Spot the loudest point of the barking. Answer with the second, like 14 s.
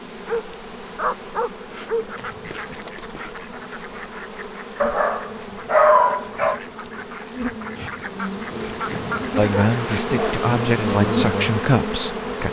6 s.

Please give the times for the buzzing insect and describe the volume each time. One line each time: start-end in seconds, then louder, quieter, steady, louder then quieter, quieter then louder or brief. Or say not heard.
0.0-12.4 louder.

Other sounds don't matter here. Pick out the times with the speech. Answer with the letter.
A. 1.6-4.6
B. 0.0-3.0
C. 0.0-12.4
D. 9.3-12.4
D.